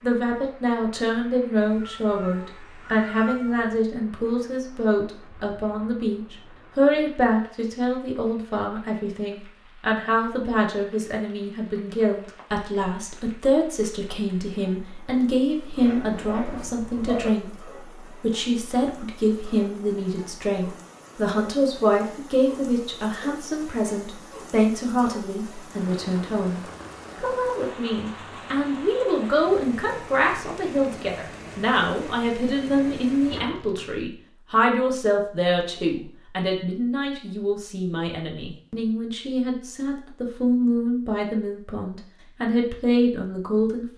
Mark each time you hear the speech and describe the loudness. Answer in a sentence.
You can hear the speech from 0.0 to 17.6 s, at a steady volume; and from 18.2 to 43.9 s, at a steady volume.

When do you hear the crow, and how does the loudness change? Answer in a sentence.
You can't hear the crow here.